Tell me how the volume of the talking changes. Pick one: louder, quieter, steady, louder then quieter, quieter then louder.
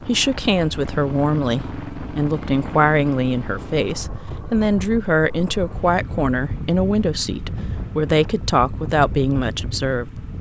steady.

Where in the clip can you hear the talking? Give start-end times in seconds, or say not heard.
0.1-10.1.